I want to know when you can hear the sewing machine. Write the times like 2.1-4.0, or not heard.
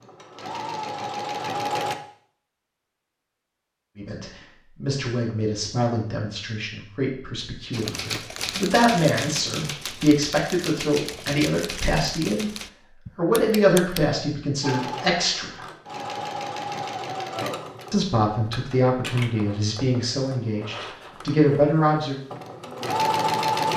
0.0-1.9, 14.6-23.7.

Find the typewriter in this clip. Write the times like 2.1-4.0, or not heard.
7.7-14.0.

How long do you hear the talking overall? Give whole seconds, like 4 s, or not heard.
16 s.